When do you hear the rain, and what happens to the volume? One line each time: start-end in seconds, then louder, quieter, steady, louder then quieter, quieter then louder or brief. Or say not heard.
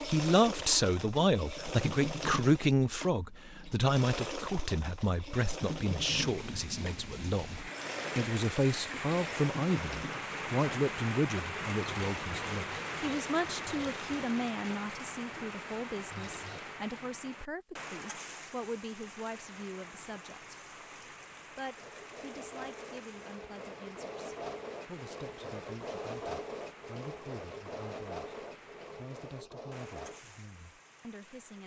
6.0-31.6 quieter.